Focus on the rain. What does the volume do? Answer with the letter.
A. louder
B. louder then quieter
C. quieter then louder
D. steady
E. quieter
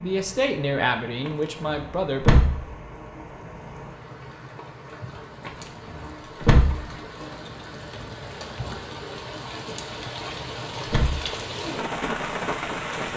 A.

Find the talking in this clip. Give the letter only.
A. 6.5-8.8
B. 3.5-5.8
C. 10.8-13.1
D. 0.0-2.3
D.